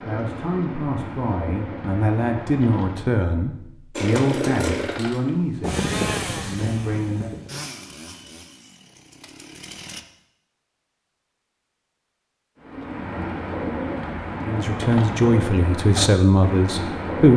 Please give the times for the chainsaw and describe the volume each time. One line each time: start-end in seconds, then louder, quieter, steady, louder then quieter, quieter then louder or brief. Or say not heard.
4.0-10.0 quieter.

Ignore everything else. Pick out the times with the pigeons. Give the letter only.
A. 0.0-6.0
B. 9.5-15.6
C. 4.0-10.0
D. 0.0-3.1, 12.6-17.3
D.